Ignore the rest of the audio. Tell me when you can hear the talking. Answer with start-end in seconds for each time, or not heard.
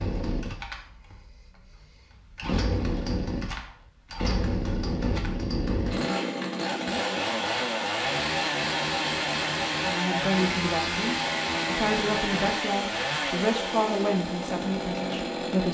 9.8-15.6.